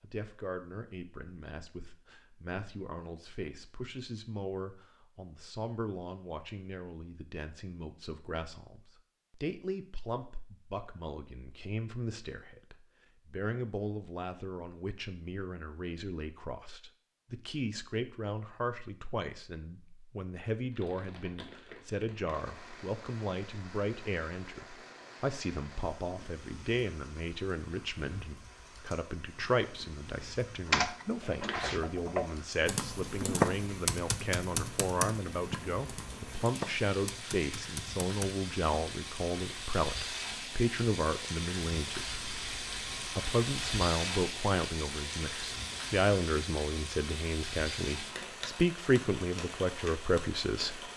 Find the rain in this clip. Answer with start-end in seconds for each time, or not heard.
20.7-50.9.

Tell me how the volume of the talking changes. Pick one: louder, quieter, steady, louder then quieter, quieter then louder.
louder.